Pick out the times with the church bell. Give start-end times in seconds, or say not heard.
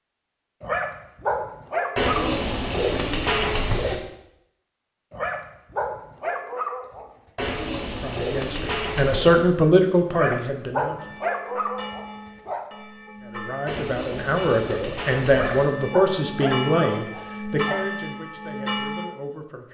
10.9-19.1.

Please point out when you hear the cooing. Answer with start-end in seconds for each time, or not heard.
1.9-4.0, 7.3-9.4, 13.7-15.7.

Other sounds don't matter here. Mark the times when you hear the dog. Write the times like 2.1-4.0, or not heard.
0.6-2.4, 5.1-7.1, 10.1-12.7, 15.3-17.8.